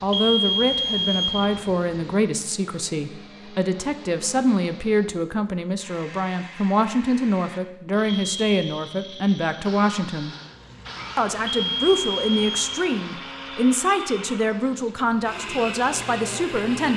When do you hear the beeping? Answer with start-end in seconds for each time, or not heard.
0.1-1.6, 8.1-8.8, 11.4-12.8.